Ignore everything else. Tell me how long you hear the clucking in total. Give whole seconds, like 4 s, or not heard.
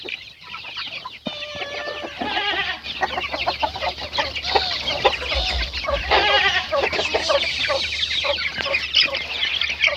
10 s.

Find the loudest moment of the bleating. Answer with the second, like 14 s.
6 s.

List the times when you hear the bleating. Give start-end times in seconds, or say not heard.
2.0-3.2, 5.9-7.1.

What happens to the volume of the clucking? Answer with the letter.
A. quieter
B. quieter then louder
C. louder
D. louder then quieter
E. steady
C.